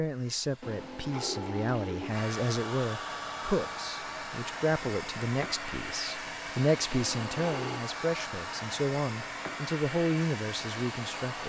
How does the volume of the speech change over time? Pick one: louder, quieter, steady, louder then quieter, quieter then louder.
steady.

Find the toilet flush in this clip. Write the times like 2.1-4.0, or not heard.
0.6-2.2, 6.9-7.8.